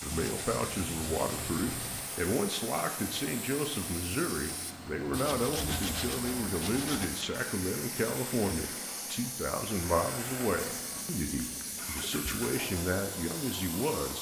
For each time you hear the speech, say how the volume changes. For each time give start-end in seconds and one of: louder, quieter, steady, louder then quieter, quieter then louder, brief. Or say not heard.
0.0-14.1 steady.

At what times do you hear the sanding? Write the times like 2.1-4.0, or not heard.
0.0-2.0, 5.0-7.0, 10.6-12.3.